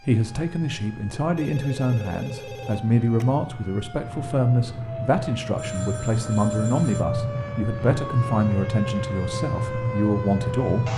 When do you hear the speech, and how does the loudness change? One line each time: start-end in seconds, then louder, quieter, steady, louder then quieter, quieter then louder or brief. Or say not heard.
0.0-10.9 steady.